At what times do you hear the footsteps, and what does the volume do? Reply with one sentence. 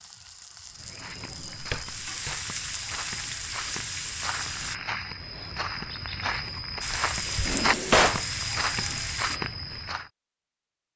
The footsteps can be heard from 0.7 to 10.1 s, getting louder.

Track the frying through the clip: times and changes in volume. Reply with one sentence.
The frying can be heard from 0.0 to 4.8 s, getting louder; and briefly from 6.8 to 9.4 s.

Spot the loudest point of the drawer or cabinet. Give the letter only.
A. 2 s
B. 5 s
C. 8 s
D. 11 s
C.